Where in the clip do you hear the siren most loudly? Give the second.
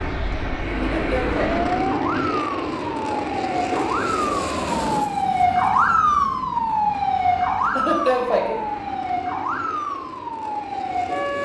6 s.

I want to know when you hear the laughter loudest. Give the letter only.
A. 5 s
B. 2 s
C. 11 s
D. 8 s
D.